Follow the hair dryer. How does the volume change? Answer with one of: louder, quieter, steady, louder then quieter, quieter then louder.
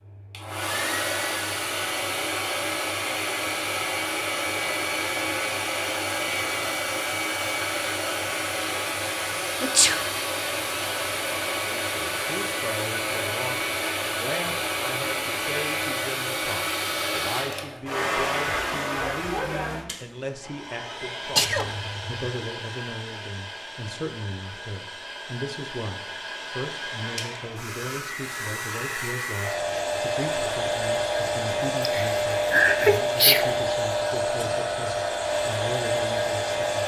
quieter then louder.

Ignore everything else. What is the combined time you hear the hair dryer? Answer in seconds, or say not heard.
37 s.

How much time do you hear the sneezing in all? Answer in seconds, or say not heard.
3 s.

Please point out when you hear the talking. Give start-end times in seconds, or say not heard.
11.8-36.8.